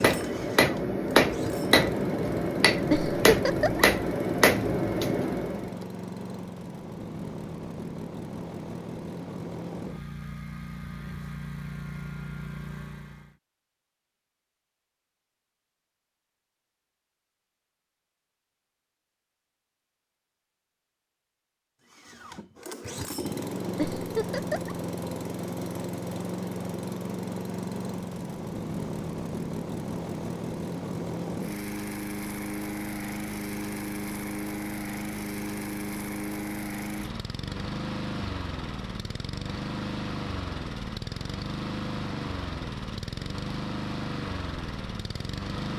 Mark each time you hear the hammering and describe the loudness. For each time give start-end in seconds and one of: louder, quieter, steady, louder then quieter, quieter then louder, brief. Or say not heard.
0.0-5.8 steady.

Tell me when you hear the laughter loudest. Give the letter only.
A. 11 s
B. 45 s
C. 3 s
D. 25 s
C.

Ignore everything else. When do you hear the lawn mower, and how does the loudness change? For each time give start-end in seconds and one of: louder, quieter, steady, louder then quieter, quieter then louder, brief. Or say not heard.
0.0-13.3 steady
21.9-45.7 steady.